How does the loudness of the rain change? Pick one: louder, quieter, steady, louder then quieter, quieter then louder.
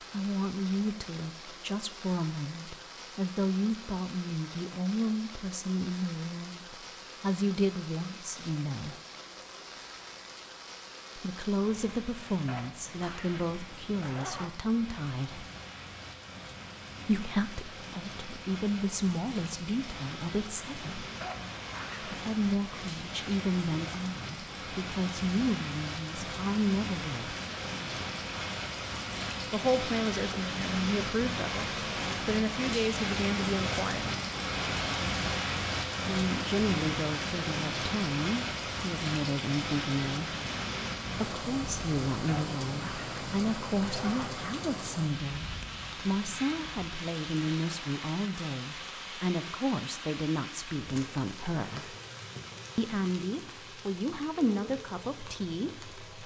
louder then quieter.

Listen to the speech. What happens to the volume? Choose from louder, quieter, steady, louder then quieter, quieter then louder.
steady.